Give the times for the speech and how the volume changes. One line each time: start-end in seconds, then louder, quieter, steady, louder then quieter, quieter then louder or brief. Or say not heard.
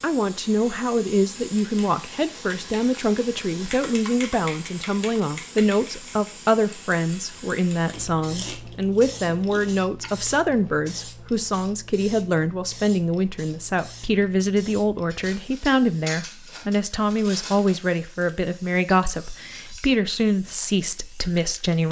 0.0-21.8 steady.